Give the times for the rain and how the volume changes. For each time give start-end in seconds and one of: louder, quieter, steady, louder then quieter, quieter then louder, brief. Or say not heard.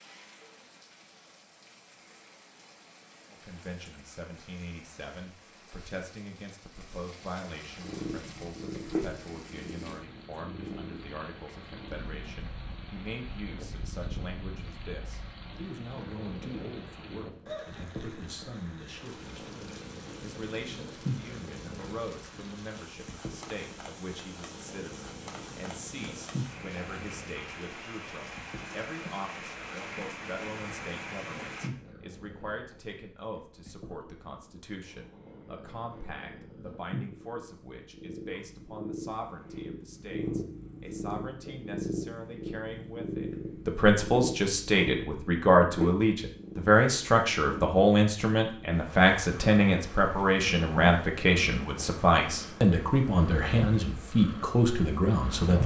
0.0-31.7 louder.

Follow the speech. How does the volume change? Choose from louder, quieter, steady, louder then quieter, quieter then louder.
louder.